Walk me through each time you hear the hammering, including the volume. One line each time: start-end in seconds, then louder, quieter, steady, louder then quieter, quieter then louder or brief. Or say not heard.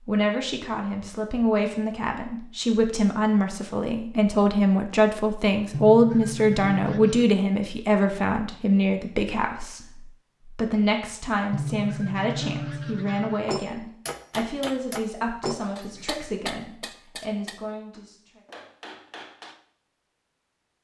13.4-19.6 quieter.